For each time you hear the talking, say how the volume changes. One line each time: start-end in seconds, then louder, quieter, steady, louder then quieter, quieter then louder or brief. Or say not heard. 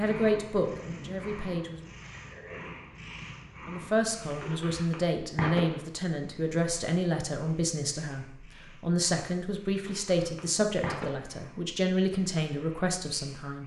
0.0-1.8 brief
3.6-13.6 steady.